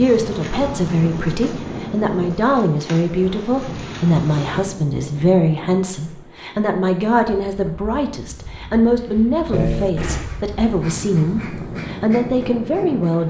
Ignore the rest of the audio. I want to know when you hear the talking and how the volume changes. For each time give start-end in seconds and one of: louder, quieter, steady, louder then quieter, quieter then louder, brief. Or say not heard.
0.0-13.2 steady.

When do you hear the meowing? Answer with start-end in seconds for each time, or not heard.
9.5-10.3.